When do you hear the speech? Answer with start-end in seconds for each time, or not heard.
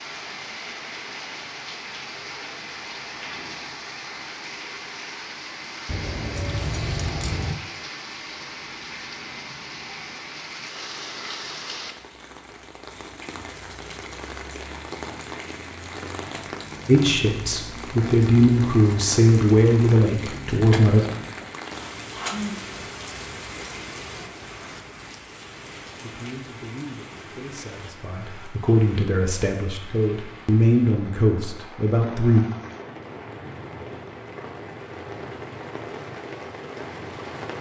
16.9-21.1, 26.0-32.5.